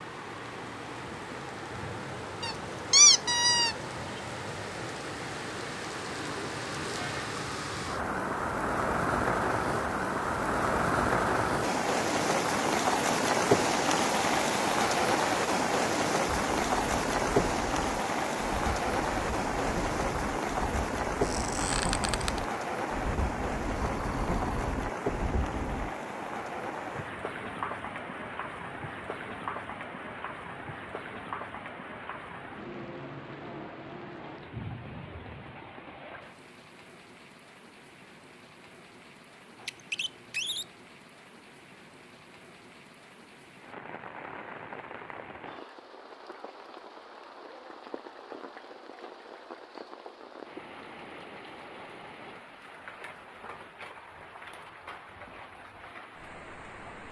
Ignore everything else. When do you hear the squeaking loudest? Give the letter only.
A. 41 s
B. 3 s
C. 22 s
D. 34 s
B.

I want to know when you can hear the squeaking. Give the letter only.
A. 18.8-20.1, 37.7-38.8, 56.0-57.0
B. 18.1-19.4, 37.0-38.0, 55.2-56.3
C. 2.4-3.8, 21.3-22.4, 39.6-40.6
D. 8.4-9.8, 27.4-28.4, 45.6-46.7
C.